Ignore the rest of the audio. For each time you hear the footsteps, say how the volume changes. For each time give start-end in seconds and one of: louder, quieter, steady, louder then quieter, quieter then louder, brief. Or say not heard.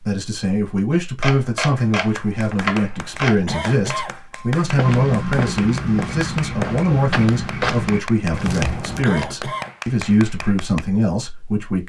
4.6-9.1 steady.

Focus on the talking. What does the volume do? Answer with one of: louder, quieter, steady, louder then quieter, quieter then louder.
steady.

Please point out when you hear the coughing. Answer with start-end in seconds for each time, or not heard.
3.5-4.2, 9.0-9.8.